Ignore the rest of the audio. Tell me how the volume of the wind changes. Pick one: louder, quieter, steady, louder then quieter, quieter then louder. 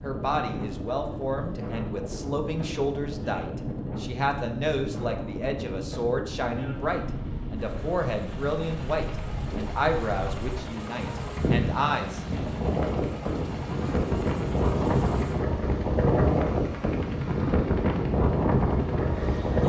louder.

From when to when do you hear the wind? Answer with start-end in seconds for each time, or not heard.
0.0-19.6.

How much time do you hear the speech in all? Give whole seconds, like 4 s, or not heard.
12 s.